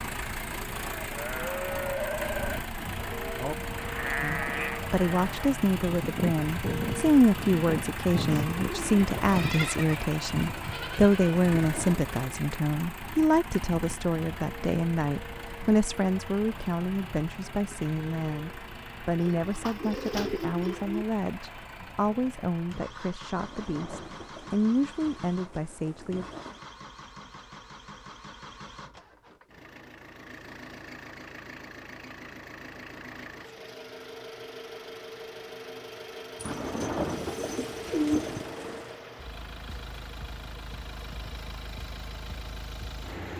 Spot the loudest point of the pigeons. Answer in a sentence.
The loudest moment of the pigeons is at 38 seconds.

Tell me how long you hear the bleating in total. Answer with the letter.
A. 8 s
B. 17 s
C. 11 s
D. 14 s
C.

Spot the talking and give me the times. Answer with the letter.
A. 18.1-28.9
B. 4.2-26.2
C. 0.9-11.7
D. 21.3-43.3
B.